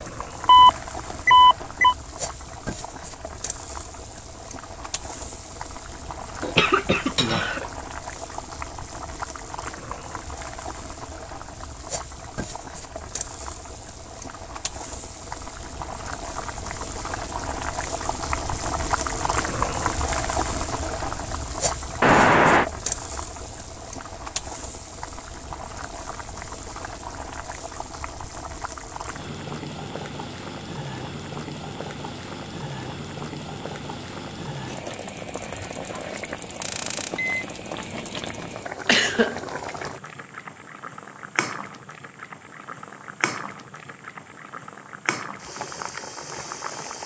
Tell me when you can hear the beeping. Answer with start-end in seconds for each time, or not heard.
0.5-1.9, 22.0-22.6, 36.6-37.5.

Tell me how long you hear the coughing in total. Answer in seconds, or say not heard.
2 s.